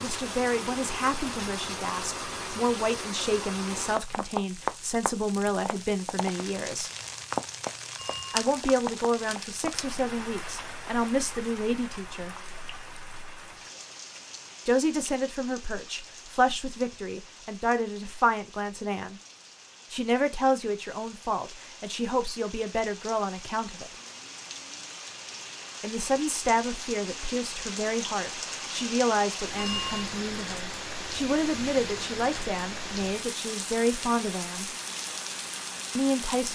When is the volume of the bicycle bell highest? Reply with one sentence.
The volume of the bicycle bell peaks at 30 seconds.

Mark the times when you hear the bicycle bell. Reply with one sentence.
The bicycle bell can be heard from 8.0 to 8.4 s and from 29.6 to 30.1 s.